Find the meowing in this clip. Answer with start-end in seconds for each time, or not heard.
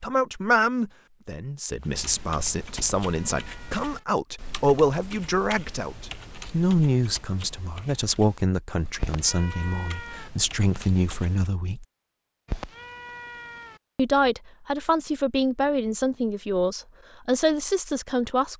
2.8-4.0, 9.0-10.3, 12.4-13.8.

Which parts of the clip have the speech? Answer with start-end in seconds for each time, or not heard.
0.0-11.8, 13.9-18.5.